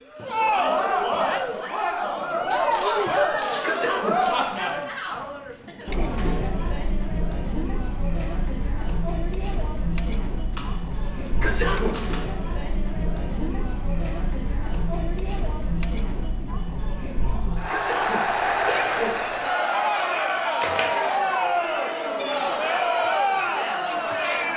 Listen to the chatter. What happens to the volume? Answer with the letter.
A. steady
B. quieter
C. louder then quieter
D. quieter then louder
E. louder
D.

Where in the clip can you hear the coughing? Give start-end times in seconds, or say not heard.
3.6-4.2, 11.4-12.1, 17.7-19.3.